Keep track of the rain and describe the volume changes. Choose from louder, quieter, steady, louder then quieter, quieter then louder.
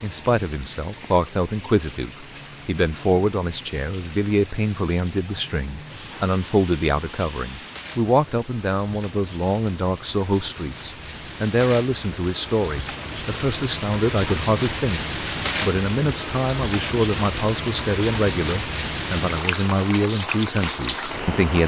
louder.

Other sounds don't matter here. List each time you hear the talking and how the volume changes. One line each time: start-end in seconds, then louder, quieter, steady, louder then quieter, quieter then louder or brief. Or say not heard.
0.0-21.6 steady.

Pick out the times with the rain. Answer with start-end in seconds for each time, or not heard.
0.0-21.6.